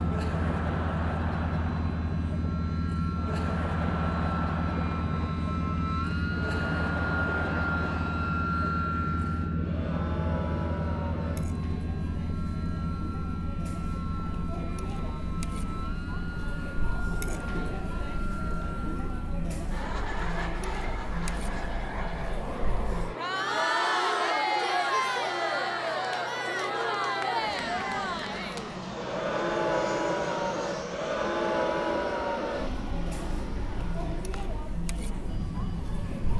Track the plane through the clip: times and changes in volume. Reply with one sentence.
You can hear the plane from 0.0 to 36.3 s, getting quieter.